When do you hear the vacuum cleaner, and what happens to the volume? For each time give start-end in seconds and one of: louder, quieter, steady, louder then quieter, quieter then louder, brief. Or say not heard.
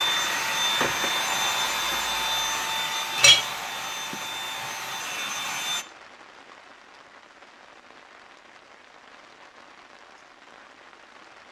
0.0-5.8 quieter.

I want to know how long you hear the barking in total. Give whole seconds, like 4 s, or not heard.
not heard.